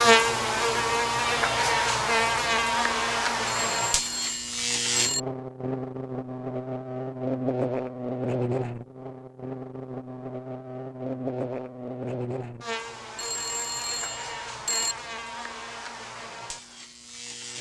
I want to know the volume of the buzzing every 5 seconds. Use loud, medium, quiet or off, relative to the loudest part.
loud, medium, medium, quiet.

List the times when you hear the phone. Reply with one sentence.
You can hear the phone from 3.5 to 5.2 s and from 13.2 to 14.9 s.